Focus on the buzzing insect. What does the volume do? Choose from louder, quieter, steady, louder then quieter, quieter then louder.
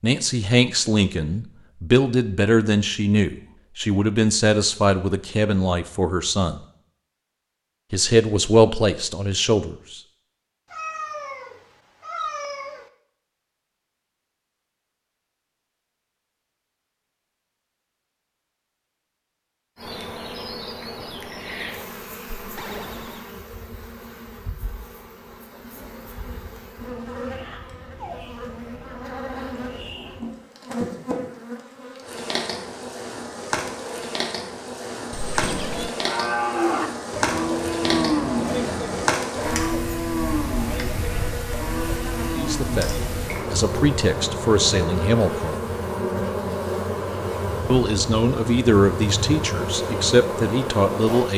louder.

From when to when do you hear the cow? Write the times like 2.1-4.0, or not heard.
35.9-43.5.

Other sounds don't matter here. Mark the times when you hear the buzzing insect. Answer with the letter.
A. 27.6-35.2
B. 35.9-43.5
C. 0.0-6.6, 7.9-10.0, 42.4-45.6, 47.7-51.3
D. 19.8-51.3
D.